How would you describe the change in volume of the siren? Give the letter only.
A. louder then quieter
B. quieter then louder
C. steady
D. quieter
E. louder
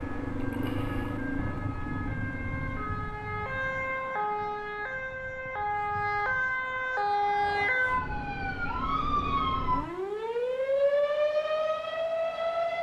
E.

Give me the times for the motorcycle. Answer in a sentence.
You can hear the motorcycle from 0.0 to 3.0 s.